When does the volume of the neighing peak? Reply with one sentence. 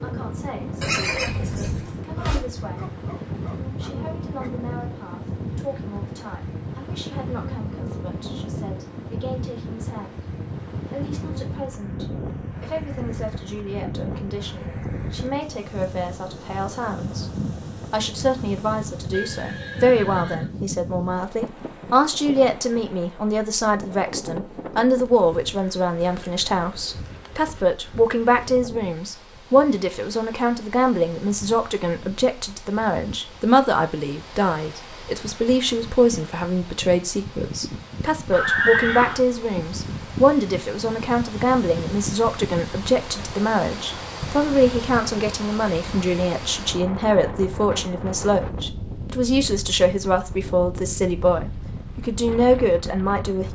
The loudest moment of the neighing is at 39 seconds.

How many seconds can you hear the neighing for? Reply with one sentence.
You can hear the neighing for 4 seconds altogether.